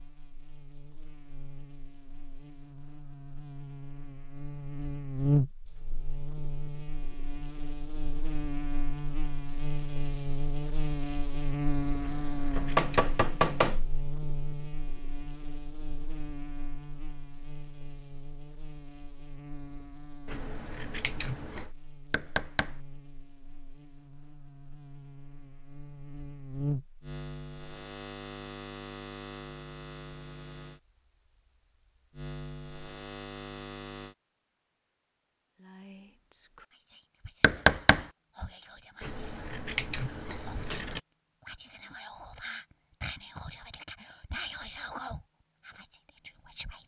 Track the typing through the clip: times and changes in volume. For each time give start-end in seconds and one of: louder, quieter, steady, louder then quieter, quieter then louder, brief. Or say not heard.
not heard.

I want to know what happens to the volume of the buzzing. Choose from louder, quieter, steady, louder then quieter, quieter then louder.
quieter.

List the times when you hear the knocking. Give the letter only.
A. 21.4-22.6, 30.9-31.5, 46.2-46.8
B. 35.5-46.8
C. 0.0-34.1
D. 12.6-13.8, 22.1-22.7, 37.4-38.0
D.